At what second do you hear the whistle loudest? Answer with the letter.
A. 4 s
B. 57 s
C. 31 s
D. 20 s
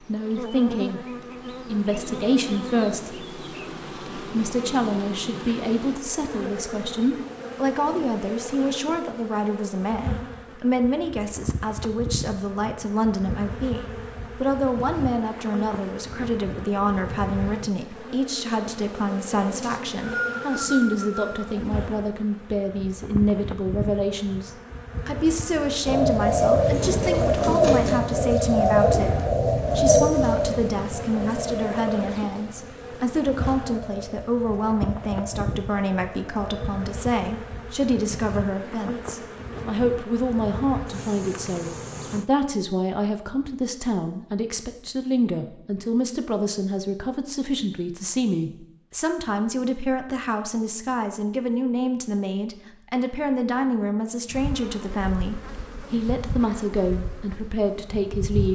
D.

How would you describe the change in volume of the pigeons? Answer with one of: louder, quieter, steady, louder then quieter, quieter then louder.
quieter.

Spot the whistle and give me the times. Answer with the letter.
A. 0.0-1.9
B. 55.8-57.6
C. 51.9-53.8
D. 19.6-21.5
D.